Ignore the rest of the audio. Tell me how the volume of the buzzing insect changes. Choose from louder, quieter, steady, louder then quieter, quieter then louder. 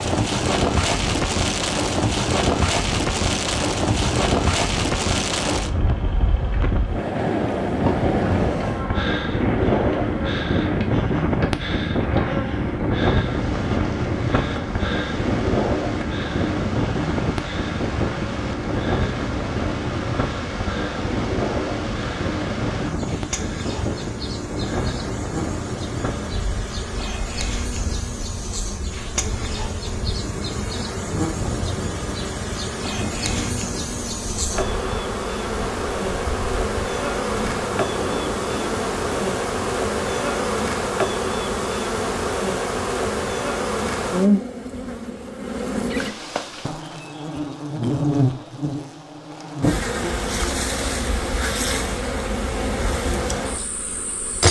louder.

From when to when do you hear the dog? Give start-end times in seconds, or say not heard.
not heard.